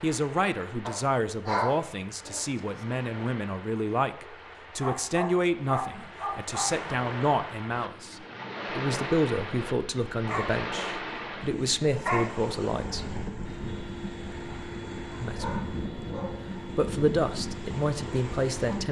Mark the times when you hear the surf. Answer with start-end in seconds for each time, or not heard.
0.0-18.8.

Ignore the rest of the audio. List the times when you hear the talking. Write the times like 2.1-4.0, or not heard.
0.0-13.2, 15.2-15.6, 16.6-18.8.